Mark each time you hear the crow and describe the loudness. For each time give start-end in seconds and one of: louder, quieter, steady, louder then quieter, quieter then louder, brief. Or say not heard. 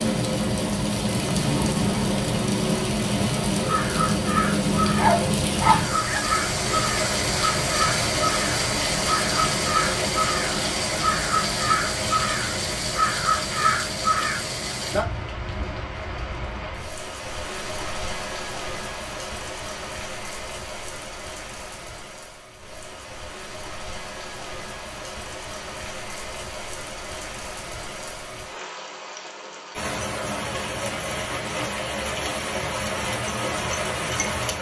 3.6-14.4 steady.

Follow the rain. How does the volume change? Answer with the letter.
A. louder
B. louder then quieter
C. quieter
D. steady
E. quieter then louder
E.